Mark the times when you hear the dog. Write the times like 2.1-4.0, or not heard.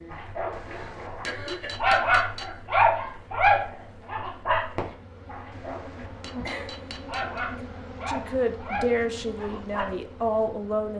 0.1-9.8.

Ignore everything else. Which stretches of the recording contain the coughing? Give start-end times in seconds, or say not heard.
0.7-1.8, 6.5-7.5.